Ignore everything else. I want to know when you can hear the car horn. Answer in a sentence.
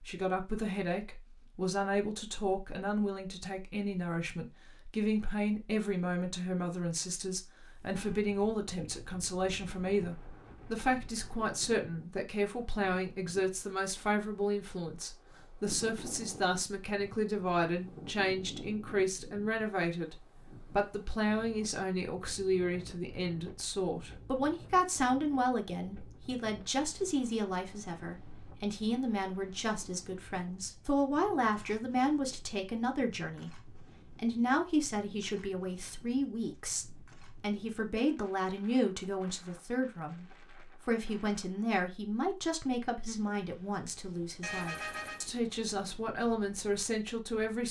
You can hear the car horn from 7.7 to 8.2 s and from 44.4 to 45.3 s.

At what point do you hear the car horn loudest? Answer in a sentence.
The loudest moment of the car horn is at 45 seconds.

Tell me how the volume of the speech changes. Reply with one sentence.
The loudness of the speech stays about the same.